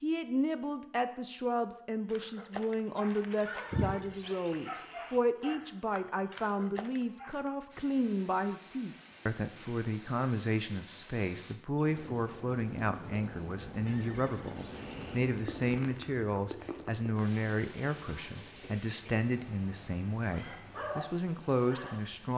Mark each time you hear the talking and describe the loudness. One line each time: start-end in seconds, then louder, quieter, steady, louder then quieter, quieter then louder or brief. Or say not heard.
0.0-22.3 steady.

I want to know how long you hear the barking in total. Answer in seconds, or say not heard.
7 s.